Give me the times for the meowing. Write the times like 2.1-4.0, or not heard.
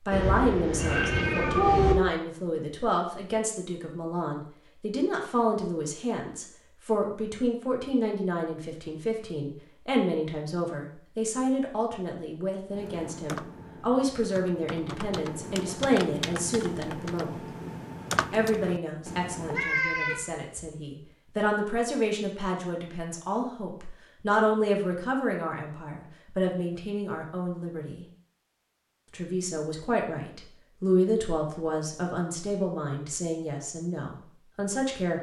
0.1-1.9, 19.4-20.6.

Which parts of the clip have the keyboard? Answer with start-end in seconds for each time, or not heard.
12.7-19.7.